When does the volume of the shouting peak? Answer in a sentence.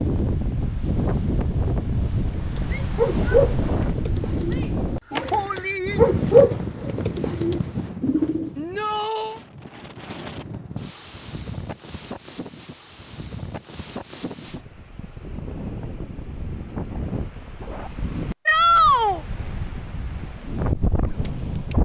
The loudest moment of the shouting is at 19 seconds.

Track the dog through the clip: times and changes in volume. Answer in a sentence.
The dog can't be heard in this clip.